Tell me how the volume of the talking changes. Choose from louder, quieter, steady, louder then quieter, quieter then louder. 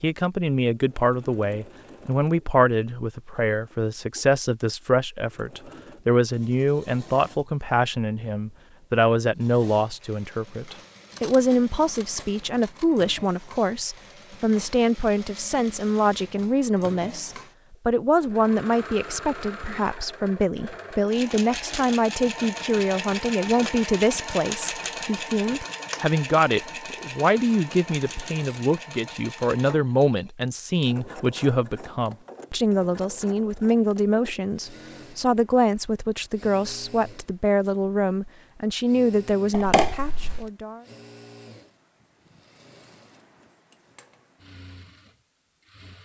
steady.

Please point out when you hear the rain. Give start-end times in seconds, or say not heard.
not heard.